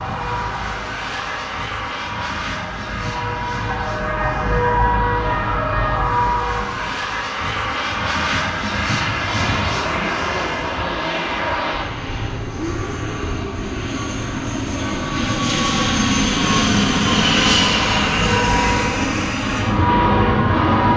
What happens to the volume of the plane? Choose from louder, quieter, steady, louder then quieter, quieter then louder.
louder.